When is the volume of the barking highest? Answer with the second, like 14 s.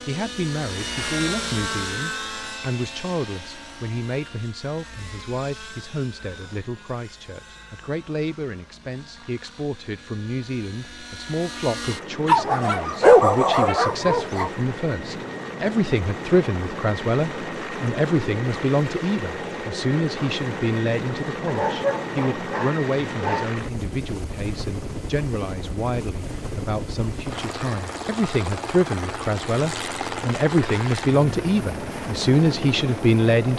13 s.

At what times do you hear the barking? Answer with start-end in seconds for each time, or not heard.
12.2-14.5, 21.4-23.5.